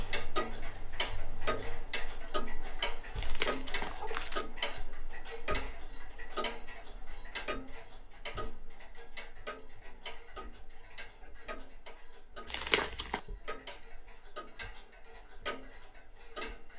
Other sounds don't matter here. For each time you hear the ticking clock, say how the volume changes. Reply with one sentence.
The ticking clock can be heard from 0.0 to 16.7 s, getting quieter.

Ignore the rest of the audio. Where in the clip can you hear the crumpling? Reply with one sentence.
The crumpling can be heard from 3.1 to 4.5 s and from 12.4 to 13.2 s.